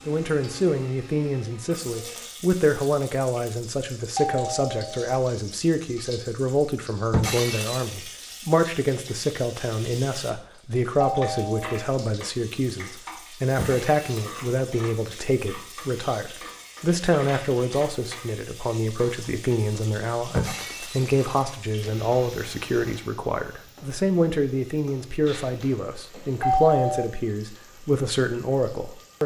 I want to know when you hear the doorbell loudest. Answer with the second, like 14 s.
27 s.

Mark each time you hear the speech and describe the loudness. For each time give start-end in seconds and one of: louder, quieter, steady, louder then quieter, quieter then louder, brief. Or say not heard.
0.1-29.2 steady.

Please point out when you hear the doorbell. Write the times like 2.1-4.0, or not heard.
4.2-5.0, 11.0-11.8, 25.2-27.1.